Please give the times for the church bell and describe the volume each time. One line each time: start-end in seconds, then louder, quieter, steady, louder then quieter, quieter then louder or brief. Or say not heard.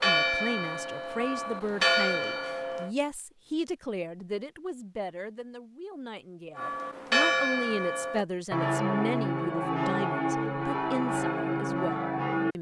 0.0-2.9 brief
6.5-12.5 steady.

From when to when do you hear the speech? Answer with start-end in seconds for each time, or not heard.
0.0-12.5.